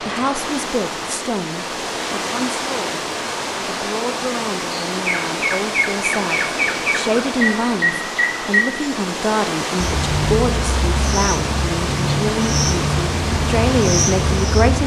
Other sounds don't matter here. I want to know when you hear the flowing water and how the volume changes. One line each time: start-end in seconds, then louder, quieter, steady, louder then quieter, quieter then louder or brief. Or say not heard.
0.0-14.8 steady.